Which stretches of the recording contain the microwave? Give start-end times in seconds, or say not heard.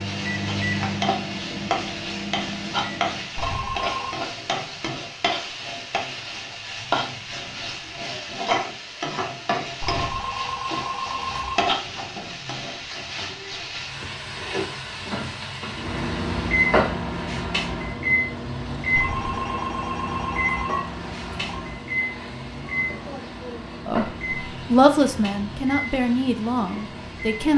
0.0-3.3, 15.7-27.5.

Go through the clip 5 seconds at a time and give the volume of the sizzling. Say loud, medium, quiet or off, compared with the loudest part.
loud, loud, loud, loud, medium, quiet.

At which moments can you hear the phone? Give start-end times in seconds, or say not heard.
3.4-4.2, 9.8-11.7, 18.9-21.6.